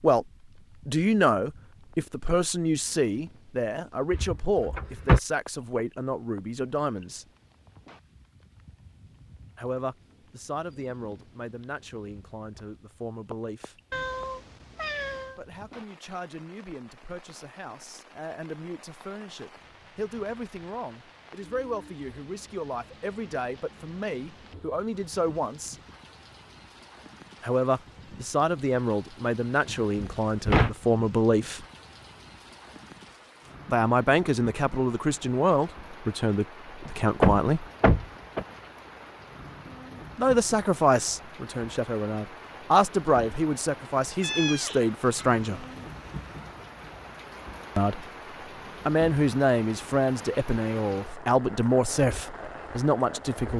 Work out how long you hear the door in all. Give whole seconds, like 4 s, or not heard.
4 s.